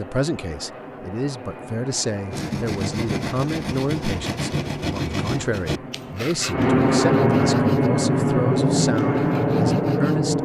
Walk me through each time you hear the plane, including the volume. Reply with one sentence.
The plane can be heard from 0.0 to 10.4 s, getting louder.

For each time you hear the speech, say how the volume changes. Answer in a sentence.
The speech can be heard from 0.0 to 10.4 s, at a steady volume.